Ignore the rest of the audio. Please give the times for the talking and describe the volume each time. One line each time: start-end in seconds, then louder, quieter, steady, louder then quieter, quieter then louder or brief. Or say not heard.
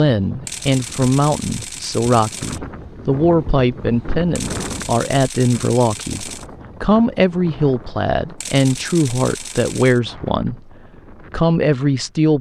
0.0-12.3 steady.